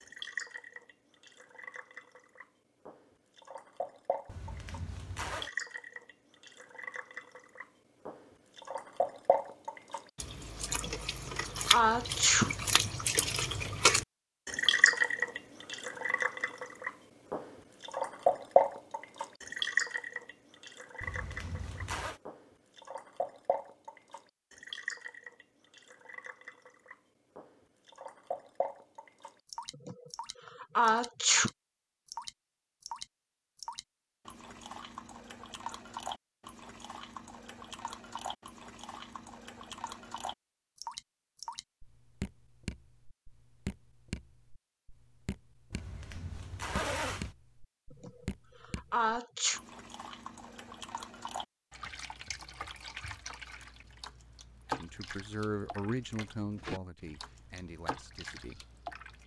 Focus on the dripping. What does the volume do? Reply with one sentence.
The volume of the dripping goes up, then down.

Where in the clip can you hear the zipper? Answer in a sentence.
You can hear the zipper from 4.2 to 5.5 s, from 21.0 to 22.2 s and from 45.7 to 47.4 s.